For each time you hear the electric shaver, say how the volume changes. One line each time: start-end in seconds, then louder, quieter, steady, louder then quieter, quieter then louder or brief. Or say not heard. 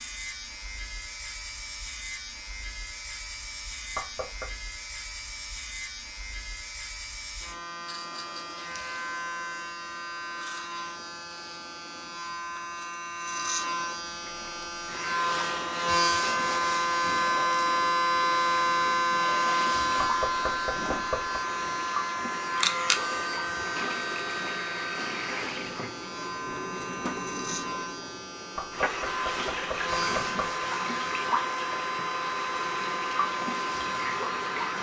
0.0-34.7 louder then quieter.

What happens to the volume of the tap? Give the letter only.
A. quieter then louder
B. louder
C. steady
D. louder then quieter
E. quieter
B.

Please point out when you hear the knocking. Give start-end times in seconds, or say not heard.
3.9-4.5, 19.9-21.4, 28.6-30.6.